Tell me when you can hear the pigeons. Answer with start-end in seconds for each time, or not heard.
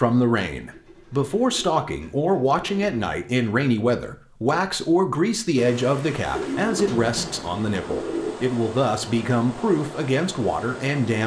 0.7-3.0, 6.3-8.3.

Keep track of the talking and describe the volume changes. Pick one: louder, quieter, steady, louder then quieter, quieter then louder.
steady.